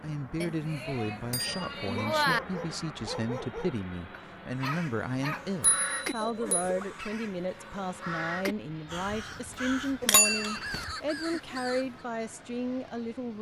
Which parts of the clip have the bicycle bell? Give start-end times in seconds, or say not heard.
0.4-2.4, 5.6-6.7, 10.0-10.8.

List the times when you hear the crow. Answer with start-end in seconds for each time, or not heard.
4.5-12.1.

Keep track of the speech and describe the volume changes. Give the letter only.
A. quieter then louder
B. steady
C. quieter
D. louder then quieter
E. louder
B.